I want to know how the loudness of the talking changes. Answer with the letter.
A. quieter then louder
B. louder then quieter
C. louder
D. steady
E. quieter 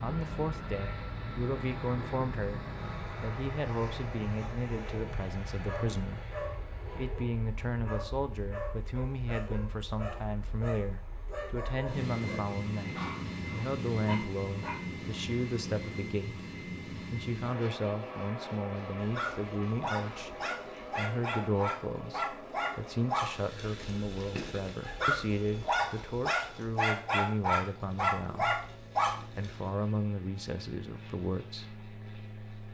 D.